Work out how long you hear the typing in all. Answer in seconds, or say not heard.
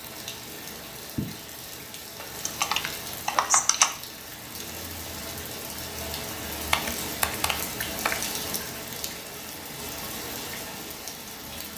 3 s.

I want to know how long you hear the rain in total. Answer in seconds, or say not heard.
12 s.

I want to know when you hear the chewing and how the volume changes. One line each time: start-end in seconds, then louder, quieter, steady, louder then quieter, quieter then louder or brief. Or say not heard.
not heard.